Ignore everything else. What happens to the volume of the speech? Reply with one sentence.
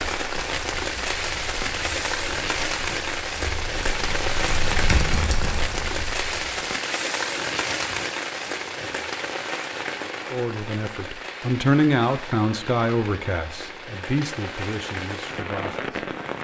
The volume of the speech goes up, then down.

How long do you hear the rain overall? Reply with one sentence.
You can hear the rain for 16 seconds altogether.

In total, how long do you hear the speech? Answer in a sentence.
The speech can be heard for 6 seconds in total.